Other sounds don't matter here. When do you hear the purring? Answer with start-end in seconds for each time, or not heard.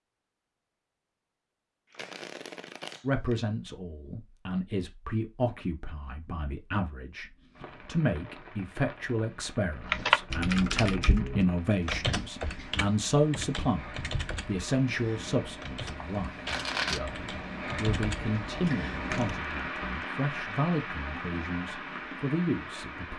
not heard.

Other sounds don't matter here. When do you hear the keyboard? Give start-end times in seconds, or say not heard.
9.9-19.4.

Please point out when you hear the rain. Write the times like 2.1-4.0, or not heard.
7.5-23.1.